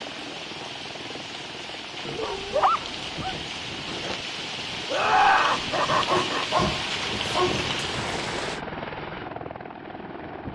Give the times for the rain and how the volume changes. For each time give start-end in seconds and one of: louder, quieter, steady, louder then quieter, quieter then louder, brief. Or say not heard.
0.0-8.6 louder.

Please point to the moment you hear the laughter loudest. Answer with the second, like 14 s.
5 s.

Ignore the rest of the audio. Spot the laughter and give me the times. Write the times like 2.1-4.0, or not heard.
4.9-6.7.